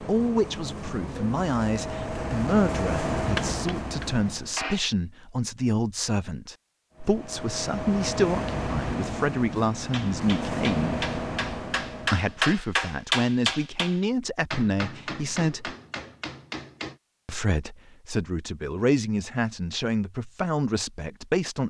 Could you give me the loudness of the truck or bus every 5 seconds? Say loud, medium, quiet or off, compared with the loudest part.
loud, loud, loud, off, off.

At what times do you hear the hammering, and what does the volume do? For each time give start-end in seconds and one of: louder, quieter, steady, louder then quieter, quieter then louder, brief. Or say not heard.
3.2-4.8 brief
9.9-16.9 louder then quieter.